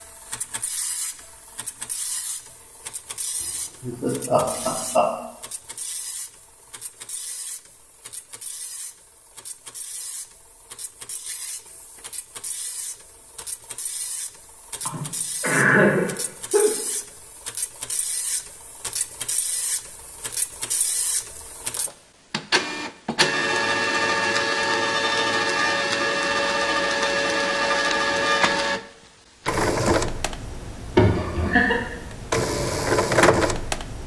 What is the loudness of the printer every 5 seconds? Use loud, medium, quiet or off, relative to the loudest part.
quiet, quiet, quiet, quiet, loud, loud, loud.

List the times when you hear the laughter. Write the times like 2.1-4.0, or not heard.
3.8-5.0, 14.8-16.7, 30.9-31.8.